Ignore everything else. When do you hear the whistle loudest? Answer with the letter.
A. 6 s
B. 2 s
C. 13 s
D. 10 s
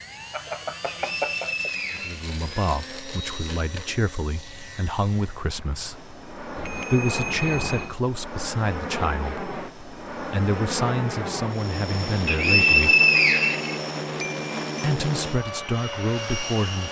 C.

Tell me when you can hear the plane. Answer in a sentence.
You can hear the plane from 0.0 to 16.8 s.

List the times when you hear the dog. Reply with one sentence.
You can't hear the dog here.